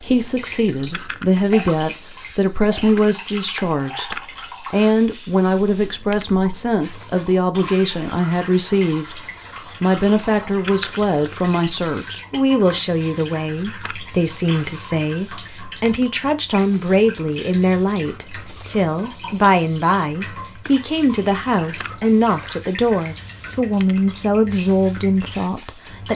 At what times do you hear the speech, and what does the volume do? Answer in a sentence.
You can hear the speech from 0.0 to 9.2 s, at a steady volume; and from 9.8 to 26.1 s, at a steady volume.